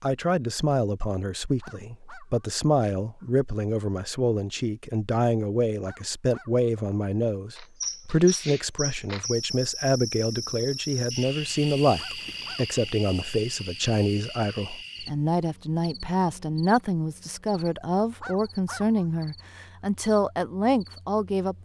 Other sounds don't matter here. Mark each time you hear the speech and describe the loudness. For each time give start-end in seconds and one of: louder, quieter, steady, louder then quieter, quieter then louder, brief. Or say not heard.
0.0-21.5 steady.